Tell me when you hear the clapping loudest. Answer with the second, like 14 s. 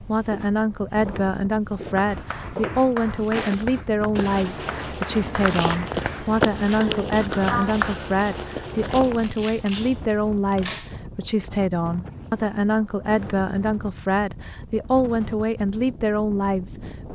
8 s.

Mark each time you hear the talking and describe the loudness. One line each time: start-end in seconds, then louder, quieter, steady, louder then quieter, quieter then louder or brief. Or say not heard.
0.0-16.8 steady.